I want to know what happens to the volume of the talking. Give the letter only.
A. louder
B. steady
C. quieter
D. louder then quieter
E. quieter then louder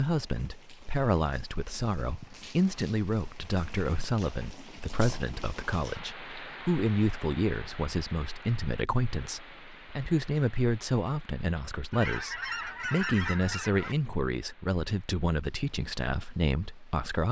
B.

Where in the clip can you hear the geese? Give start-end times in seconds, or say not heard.
11.9-13.9.